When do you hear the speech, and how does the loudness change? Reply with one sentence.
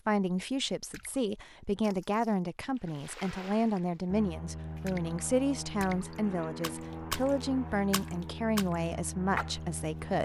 The speech can be heard from 0.1 to 10.1 s, at a steady volume.